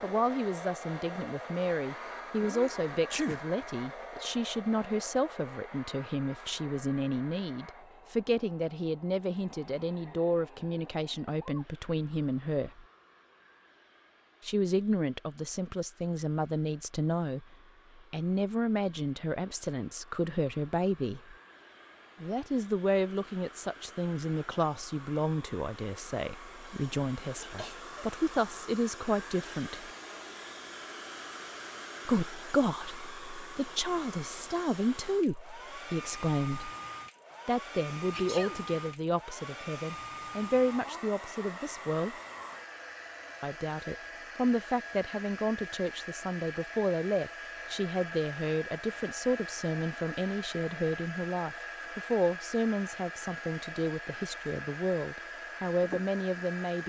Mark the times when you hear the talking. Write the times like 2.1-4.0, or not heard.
0.0-12.8, 14.4-21.4, 22.2-29.9, 32.0-36.7, 37.5-42.1, 43.4-56.8.